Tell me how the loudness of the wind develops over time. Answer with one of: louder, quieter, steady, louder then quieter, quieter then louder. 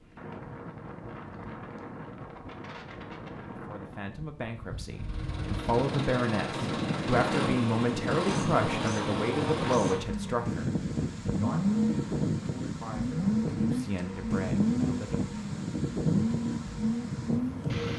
louder.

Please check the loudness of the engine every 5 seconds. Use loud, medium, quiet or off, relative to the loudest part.
off, loud, loud, loud.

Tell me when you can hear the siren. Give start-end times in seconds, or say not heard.
not heard.